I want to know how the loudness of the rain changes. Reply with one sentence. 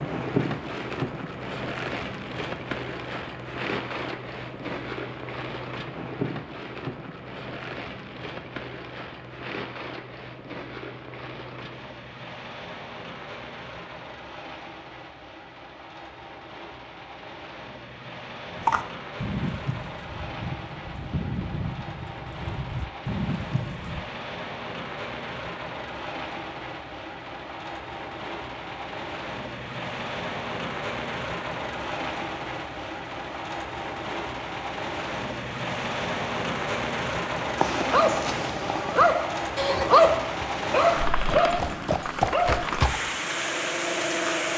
The loudness of the rain goes down, then up.